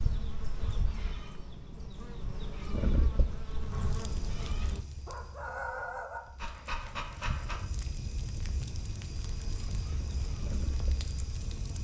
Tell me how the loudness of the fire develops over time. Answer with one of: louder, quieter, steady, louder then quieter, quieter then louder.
quieter then louder.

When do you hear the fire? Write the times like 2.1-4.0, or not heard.
3.5-11.7.